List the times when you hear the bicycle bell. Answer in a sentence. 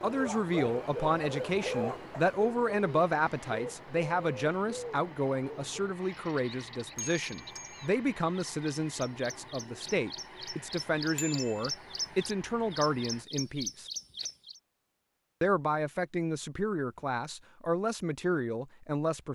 You can hear the bicycle bell from 7.0 to 7.9 s and from 11.2 to 11.7 s.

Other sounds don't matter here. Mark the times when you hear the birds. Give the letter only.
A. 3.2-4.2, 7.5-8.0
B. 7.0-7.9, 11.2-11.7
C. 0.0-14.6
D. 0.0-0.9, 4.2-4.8
C.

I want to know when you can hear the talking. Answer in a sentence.
You can hear the talking from 0.0 to 13.8 s and from 15.4 to 19.2 s.